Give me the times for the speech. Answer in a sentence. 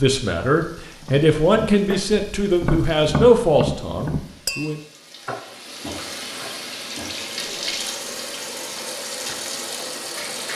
The speech can be heard from 0.0 to 4.8 s.